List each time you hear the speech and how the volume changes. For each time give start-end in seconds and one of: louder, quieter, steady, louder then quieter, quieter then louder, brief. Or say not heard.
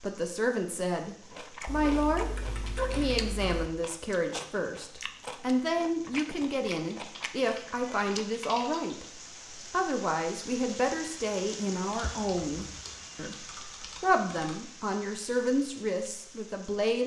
0.0-17.0 steady.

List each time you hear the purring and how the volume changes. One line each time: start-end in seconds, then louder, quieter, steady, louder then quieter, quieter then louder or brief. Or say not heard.
not heard.